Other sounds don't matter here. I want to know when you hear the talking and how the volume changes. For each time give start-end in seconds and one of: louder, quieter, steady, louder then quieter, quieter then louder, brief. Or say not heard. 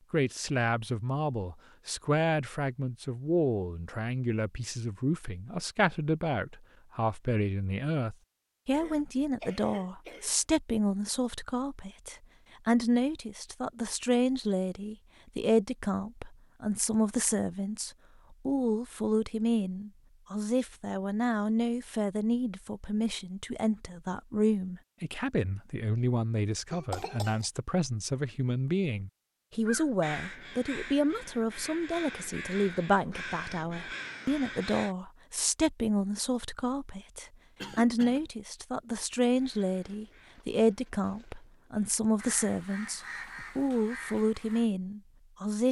0.1-45.6 steady.